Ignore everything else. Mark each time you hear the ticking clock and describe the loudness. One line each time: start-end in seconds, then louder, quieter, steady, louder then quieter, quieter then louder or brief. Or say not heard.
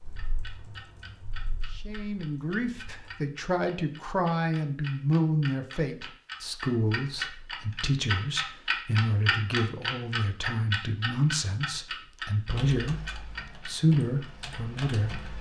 0.1-15.3 louder then quieter.